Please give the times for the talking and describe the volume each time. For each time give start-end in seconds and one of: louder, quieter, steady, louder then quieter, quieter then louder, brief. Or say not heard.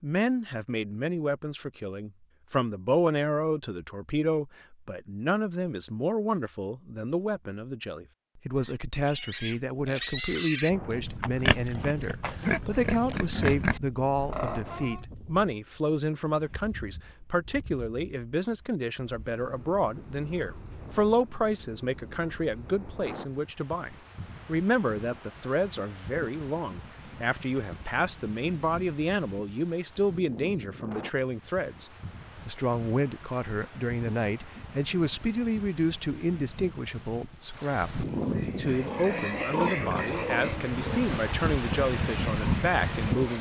0.0-43.3 steady.